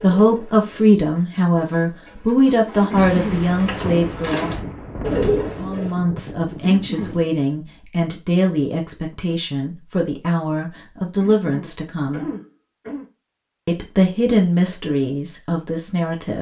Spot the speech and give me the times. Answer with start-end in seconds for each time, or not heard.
0.0-4.5, 5.6-12.2, 13.7-16.3.